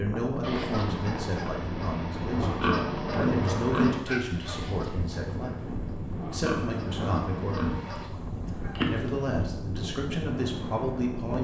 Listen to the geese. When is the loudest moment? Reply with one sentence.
The volume of the geese peaks at 9 seconds.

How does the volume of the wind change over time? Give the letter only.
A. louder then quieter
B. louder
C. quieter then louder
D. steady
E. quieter
D.